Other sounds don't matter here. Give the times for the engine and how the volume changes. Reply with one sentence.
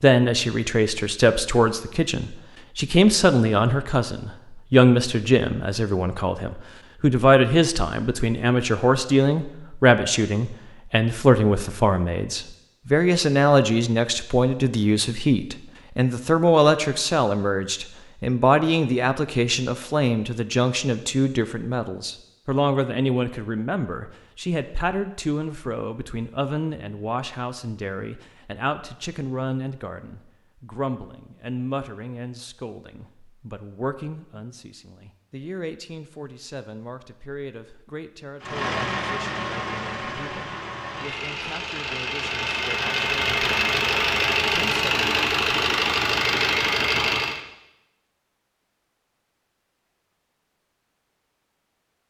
You can hear the engine from 38.4 to 47.4 s, getting louder.